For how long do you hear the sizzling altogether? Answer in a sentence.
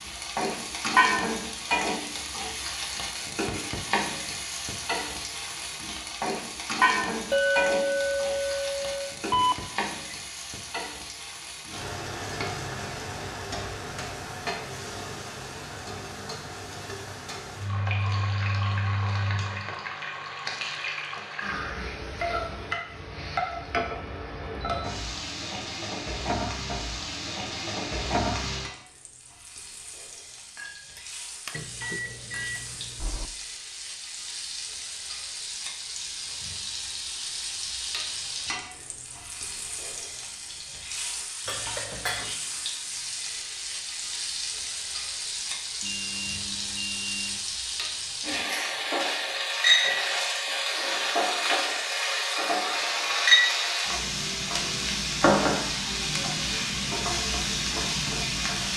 You can hear the sizzling for 59 seconds altogether.